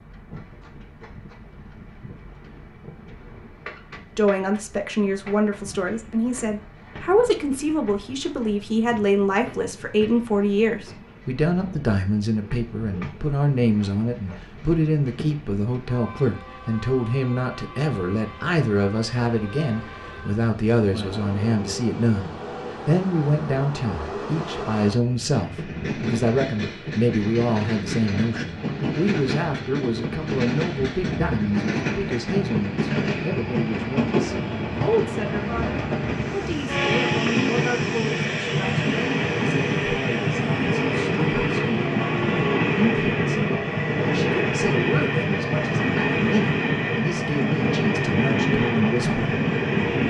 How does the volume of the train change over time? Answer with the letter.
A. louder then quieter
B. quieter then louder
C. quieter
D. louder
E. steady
D.